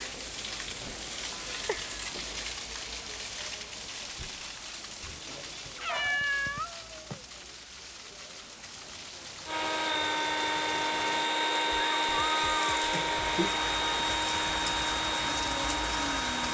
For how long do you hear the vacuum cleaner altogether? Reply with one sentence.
You can hear the vacuum cleaner for 7 seconds altogether.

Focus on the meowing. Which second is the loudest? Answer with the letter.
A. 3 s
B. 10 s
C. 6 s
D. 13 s
C.